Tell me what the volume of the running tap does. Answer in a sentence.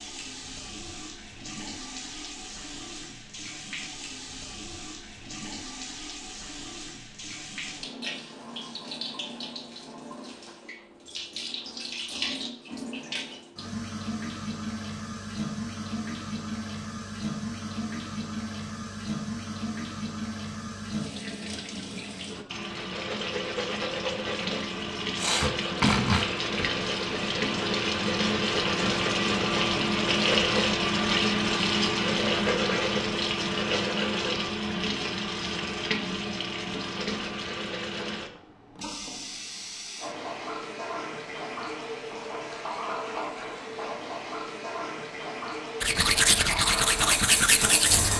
The volume of the running tap goes up, then down.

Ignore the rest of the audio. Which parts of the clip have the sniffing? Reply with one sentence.
The sniffing can be heard from 25.1 to 26.3 s.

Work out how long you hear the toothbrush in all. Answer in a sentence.
You can hear the toothbrush for 2 seconds altogether.